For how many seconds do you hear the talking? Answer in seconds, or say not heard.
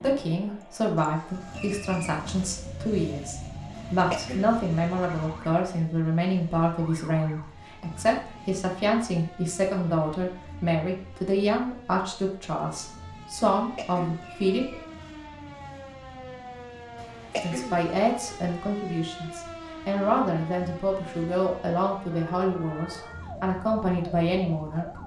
22 s.